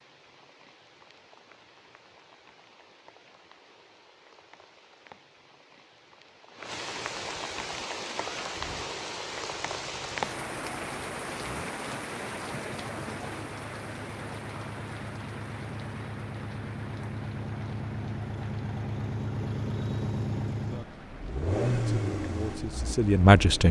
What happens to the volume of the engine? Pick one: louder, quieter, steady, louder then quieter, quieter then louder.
louder.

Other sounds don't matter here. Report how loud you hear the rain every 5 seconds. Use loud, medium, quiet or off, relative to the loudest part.
quiet, loud, loud, medium, quiet.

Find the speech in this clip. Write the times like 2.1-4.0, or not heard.
21.9-23.6.